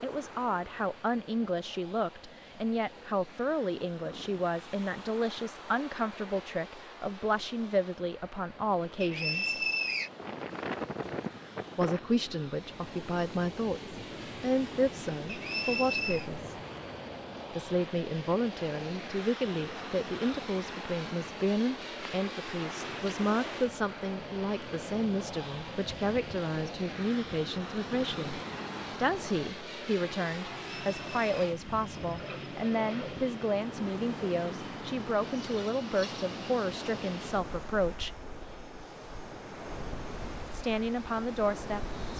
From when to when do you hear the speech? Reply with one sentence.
You can hear the speech from 0.0 to 9.6 s, from 11.8 to 16.6 s, from 17.5 to 38.1 s and from 40.5 to 42.1 s.